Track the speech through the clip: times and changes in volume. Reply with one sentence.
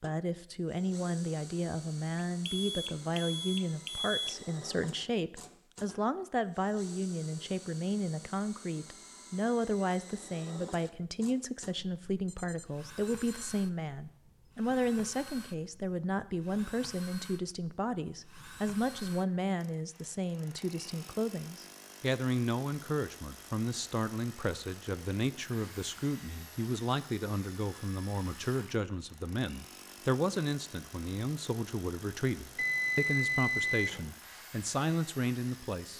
The speech can be heard from 0.0 to 35.9 s, at a steady volume.